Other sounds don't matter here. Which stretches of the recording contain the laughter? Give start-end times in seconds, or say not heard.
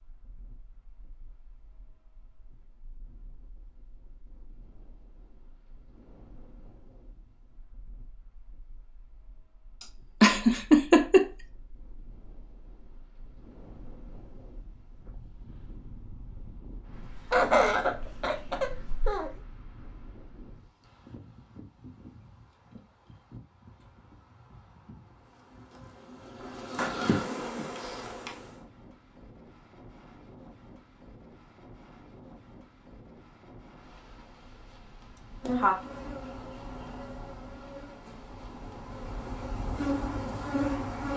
9.8-11.2, 16.9-19.3, 35.1-35.8.